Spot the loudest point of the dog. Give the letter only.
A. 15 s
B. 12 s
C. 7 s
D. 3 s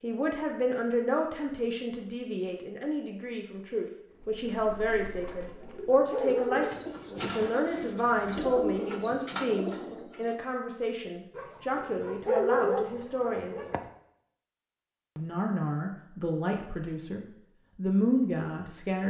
B.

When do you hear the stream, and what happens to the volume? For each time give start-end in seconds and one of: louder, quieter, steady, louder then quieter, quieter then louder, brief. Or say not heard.
not heard.